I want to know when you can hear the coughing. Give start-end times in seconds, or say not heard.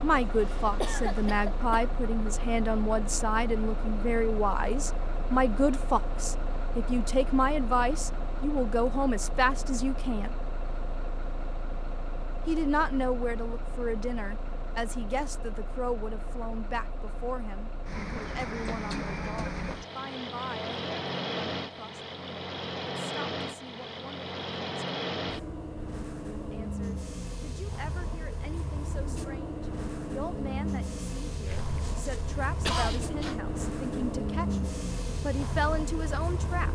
0.8-1.9, 31.4-33.4.